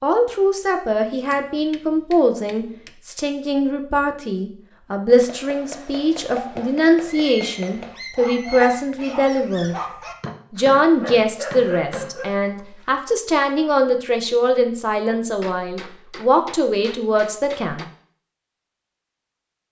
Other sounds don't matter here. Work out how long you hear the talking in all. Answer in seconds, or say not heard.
17 s.